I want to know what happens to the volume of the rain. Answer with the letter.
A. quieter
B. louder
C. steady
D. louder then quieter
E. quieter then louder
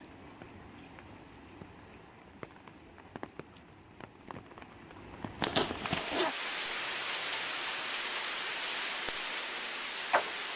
B.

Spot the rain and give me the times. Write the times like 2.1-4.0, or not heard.
0.0-10.5.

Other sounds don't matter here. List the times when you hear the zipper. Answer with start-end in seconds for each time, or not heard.
5.4-6.3.